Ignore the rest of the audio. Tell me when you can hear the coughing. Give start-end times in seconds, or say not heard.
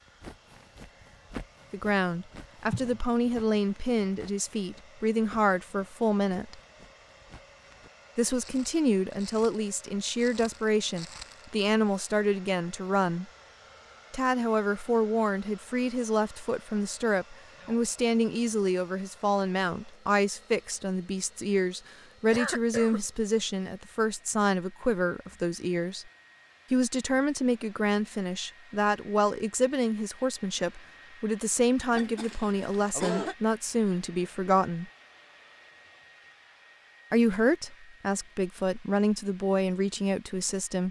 2.6-3.6, 22.3-23.0, 31.9-33.4.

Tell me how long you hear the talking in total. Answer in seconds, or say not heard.
34 s.